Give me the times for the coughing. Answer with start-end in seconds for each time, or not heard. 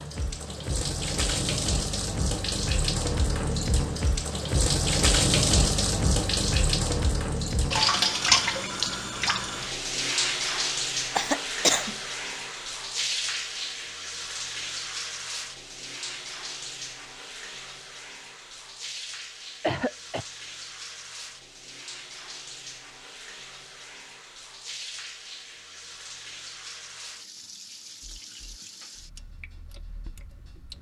11.2-11.9, 19.6-20.2.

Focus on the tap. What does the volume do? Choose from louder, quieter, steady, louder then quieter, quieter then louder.
quieter.